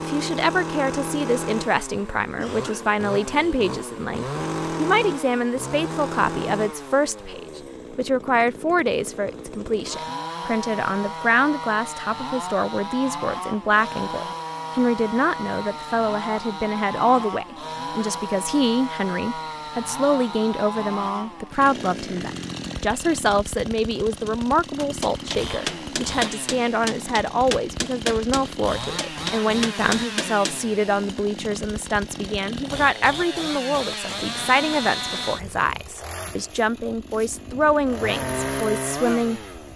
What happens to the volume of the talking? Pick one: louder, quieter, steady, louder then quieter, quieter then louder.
steady.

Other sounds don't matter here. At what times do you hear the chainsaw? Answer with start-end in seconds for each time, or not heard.
0.0-39.7.